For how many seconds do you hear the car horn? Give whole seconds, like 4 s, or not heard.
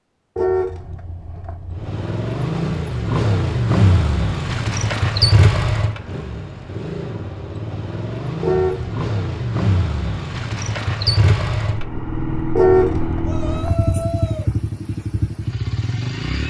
4 s.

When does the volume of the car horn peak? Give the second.
13 s.